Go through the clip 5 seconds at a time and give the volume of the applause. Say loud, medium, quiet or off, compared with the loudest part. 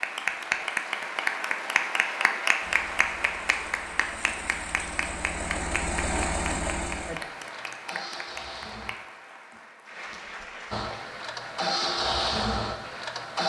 loud, medium, quiet.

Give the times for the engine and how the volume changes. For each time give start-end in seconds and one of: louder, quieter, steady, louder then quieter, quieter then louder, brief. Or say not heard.
2.6-8.9 louder then quieter
10.7-13.4 brief.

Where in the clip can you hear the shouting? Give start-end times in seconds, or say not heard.
not heard.